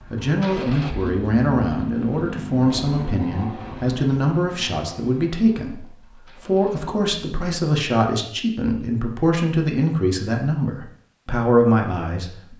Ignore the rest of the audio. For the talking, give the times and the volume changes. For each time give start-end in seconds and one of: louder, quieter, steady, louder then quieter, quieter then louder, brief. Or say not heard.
0.1-12.5 steady.